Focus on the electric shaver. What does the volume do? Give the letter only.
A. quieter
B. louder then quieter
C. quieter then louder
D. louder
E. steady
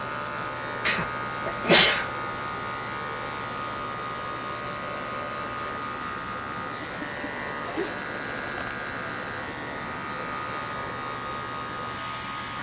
E.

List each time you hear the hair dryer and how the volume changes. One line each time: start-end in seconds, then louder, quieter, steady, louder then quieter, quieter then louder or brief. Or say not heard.
0.0-12.5 steady.